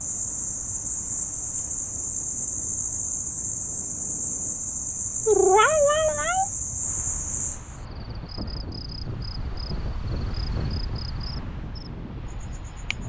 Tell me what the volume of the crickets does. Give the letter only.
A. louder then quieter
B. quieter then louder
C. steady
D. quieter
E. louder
D.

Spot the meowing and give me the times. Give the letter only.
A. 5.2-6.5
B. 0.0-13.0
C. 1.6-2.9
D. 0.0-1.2
A.